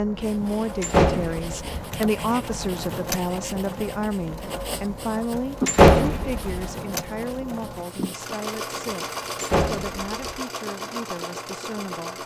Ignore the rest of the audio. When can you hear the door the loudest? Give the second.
6 s.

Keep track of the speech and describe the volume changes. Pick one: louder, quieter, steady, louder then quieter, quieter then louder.
quieter.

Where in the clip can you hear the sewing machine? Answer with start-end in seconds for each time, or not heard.
0.0-12.2.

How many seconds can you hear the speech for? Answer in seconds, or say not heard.
12 s.